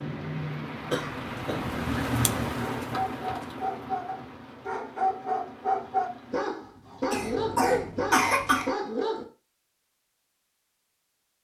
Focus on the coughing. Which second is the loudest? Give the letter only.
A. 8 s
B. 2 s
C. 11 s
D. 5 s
A.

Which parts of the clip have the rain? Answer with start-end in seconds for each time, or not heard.
0.0-6.5.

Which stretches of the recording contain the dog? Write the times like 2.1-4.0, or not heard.
2.6-9.2.